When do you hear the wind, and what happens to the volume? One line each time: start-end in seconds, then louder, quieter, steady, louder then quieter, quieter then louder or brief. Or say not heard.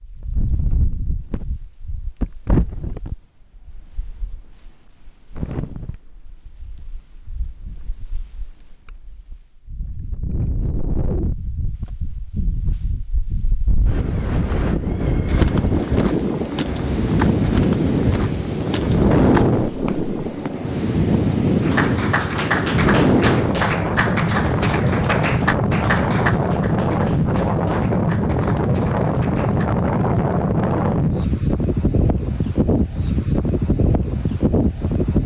0.0-35.2 louder.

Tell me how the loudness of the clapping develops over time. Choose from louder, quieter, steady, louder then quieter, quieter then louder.
quieter.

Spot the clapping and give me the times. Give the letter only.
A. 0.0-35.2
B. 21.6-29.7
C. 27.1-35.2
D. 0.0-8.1
B.